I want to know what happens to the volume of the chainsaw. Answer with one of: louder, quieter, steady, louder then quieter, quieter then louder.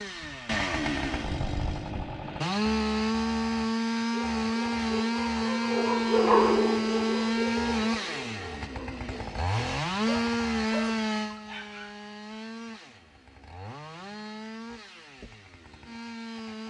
quieter.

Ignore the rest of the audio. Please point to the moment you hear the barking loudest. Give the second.
6 s.